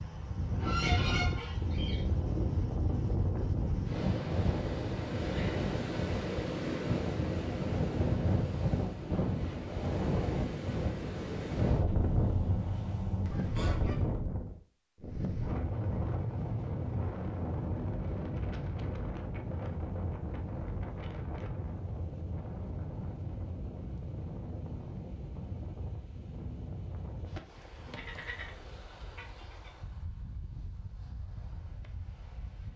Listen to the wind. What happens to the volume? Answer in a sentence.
The loudness of the wind goes down.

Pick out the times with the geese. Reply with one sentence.
The geese can be heard from 0.6 to 2.0 s, from 11.8 to 14.2 s and from 27.8 to 29.7 s.